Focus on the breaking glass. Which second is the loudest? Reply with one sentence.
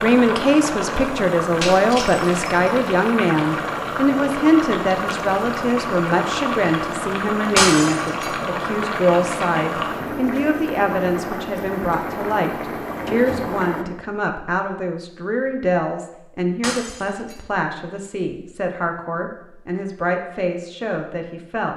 The loudest moment of the breaking glass is at 8 seconds.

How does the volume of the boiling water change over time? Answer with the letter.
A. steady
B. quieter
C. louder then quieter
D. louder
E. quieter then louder
A.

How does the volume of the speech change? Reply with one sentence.
The loudness of the speech goes down.